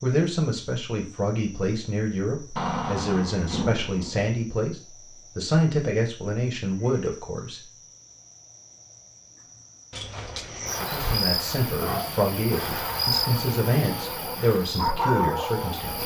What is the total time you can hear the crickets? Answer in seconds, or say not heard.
16 s.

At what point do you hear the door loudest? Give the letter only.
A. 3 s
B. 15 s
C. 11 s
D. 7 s
A.